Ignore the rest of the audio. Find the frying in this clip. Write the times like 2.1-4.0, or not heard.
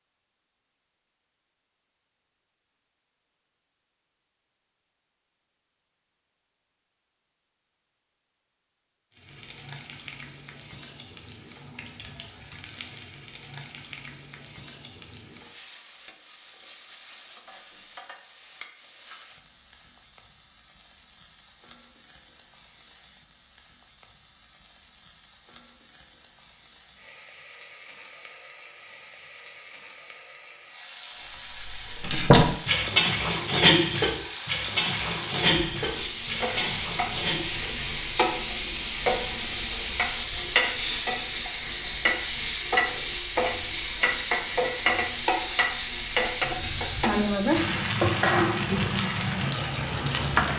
9.1-50.5.